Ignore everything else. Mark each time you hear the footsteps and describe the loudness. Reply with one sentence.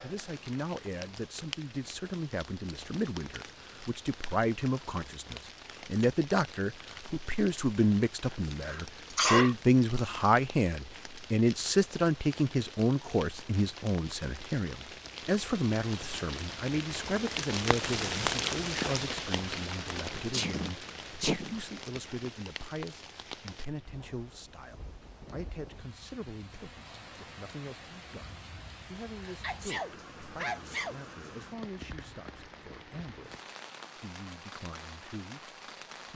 The footsteps can't be heard in this clip.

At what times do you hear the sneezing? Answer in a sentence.
The sneezing can be heard from 8.7 to 9.6 s, from 20.3 to 21.6 s and from 29.2 to 30.9 s.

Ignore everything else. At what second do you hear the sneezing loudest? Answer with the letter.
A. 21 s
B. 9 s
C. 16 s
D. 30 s
B.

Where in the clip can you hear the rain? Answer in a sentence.
You can hear the rain from 0.0 to 36.1 s.